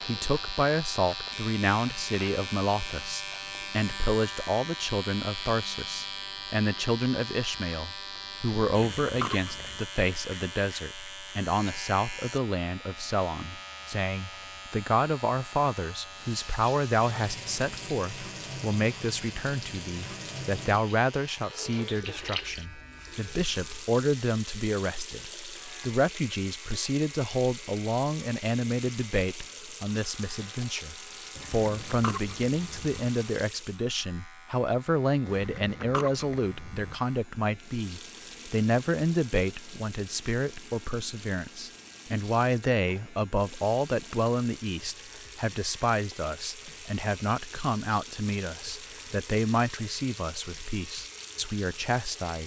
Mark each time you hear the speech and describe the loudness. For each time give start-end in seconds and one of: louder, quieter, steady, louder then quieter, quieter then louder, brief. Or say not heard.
0.1-52.4 steady.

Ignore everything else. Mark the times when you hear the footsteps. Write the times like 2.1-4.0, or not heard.
not heard.